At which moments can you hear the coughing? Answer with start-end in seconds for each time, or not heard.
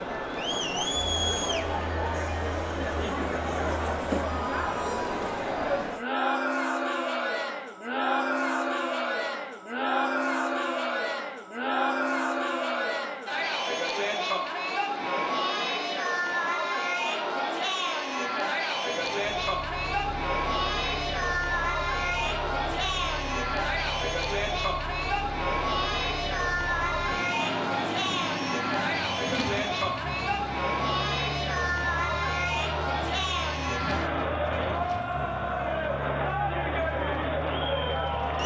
not heard.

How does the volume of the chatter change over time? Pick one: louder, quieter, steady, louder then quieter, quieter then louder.
steady.